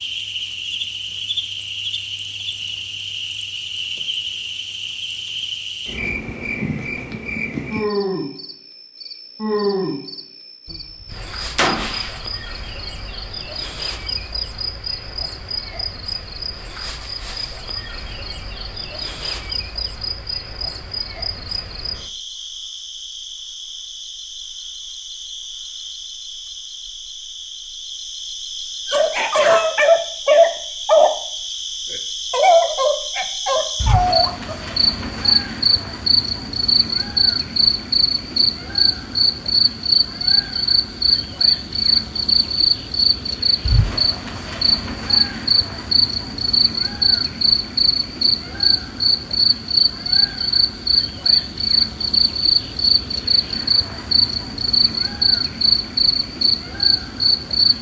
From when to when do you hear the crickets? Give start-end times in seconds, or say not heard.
0.0-57.7.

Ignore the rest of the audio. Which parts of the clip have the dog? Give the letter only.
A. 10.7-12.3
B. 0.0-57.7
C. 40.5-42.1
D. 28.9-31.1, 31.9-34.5
D.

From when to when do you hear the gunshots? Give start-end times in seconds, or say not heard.
10.7-12.3.